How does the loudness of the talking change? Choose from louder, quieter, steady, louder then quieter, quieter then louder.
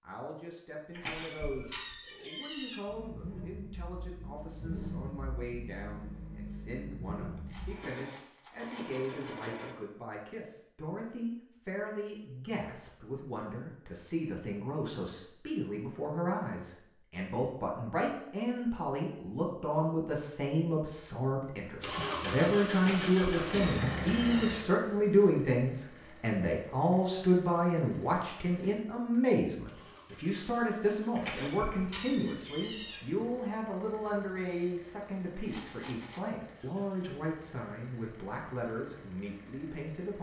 louder then quieter.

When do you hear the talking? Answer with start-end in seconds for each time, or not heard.
0.0-40.1.